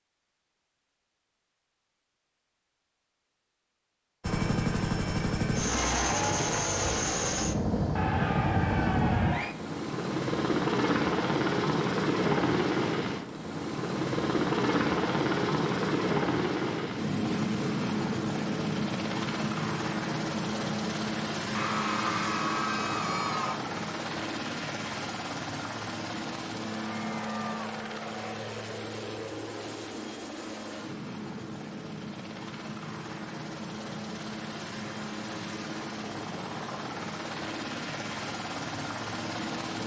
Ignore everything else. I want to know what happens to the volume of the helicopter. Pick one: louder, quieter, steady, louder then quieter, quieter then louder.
quieter.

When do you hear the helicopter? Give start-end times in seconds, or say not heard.
4.2-39.8.